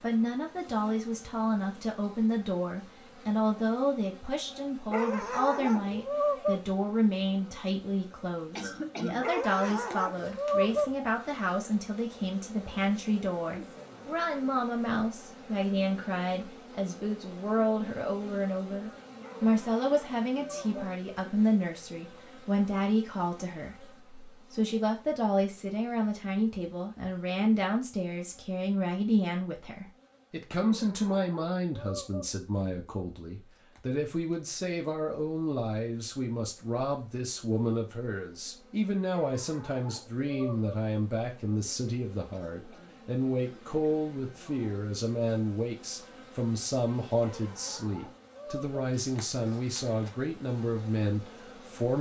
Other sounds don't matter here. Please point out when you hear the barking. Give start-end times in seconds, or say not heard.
4.9-6.6, 9.2-10.9, 19.2-20.9, 30.6-32.3, 39.1-40.8, 47.2-48.8.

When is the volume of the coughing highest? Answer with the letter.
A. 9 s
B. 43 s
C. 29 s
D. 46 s
A.